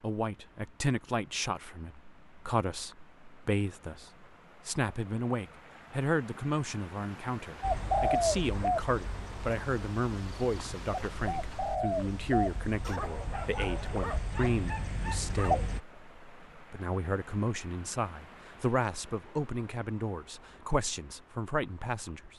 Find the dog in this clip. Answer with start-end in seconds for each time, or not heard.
12.8-15.6.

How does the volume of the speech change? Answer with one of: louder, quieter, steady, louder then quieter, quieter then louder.
steady.